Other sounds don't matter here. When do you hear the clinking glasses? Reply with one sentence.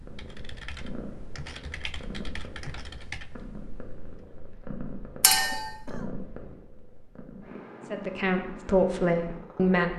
The clinking glasses can be heard from 5.2 to 5.7 s.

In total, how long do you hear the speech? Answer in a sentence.
The speech can be heard for 2 seconds in total.